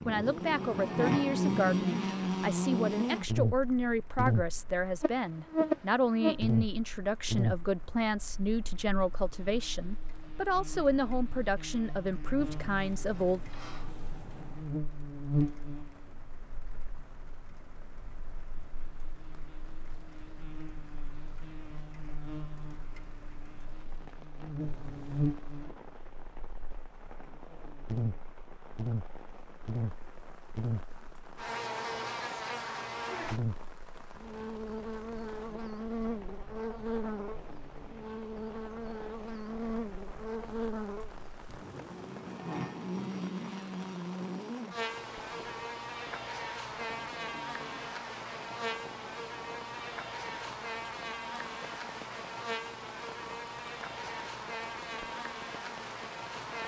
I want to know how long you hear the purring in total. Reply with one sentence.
The purring can't be heard in this clip.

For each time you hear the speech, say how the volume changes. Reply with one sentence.
The speech can be heard from 0.1 to 13.4 s, at a steady volume.